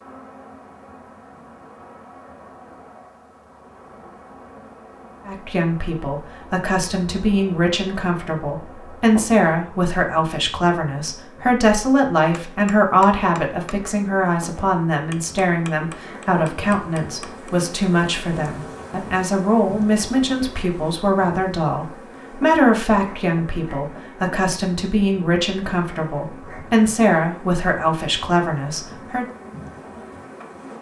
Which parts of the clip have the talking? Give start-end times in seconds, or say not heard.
5.2-29.2.